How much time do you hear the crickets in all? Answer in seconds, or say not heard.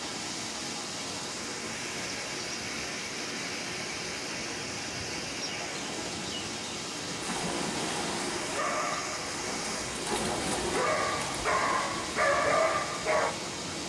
not heard.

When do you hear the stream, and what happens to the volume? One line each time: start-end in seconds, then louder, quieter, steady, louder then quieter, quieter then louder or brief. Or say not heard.
0.0-13.8 steady.